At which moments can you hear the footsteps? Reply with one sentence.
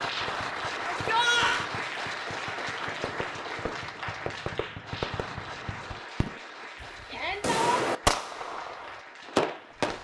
The footsteps can't be heard in this clip.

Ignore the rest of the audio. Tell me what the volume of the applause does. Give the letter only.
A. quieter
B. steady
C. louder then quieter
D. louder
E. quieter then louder
A.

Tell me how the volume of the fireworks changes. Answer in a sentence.
The volume of the fireworks goes up.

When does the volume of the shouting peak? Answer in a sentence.
The loudest moment of the shouting is at 1 second.